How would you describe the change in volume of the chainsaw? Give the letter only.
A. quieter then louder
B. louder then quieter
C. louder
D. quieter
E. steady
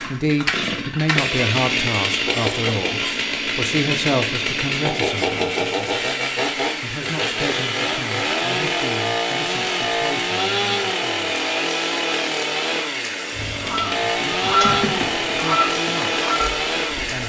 E.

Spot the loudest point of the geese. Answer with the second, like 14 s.
15 s.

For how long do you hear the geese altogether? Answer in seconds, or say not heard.
4 s.